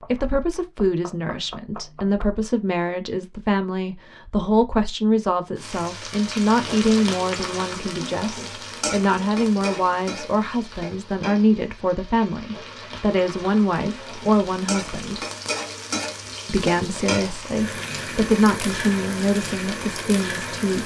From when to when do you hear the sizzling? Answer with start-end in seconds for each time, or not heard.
5.5-20.8.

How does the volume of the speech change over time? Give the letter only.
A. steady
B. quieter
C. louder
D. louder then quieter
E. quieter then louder
A.